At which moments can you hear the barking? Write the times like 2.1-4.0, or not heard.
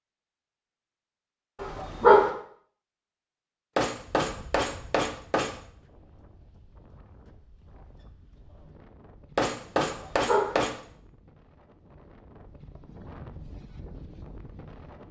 1.6-2.3, 9.8-10.6.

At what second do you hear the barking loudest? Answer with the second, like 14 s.
2 s.